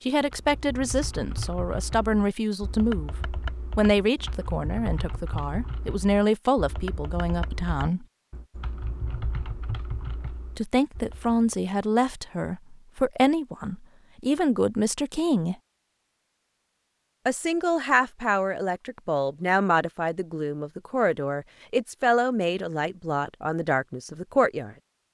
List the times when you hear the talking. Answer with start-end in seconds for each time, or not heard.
0.0-8.1, 10.6-15.6, 17.2-24.8.